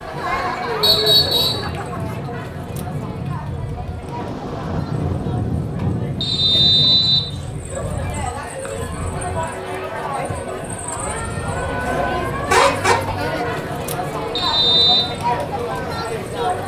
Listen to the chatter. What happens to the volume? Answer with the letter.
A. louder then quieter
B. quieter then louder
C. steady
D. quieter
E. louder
B.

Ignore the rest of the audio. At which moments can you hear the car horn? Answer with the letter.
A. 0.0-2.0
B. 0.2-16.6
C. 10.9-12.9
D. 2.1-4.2
C.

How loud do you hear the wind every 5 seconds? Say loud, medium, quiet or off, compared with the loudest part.
loud, loud, medium, medium.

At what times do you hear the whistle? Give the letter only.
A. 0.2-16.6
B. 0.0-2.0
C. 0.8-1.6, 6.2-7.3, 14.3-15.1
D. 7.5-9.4
C.